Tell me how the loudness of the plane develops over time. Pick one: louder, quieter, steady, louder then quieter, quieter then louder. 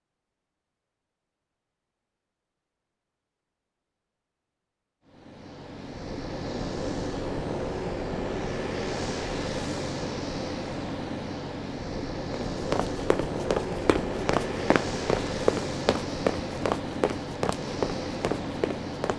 steady.